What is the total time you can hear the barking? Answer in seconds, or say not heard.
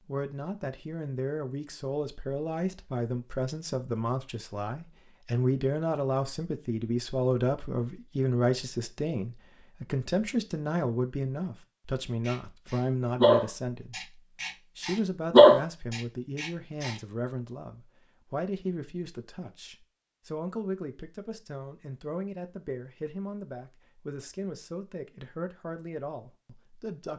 5 s.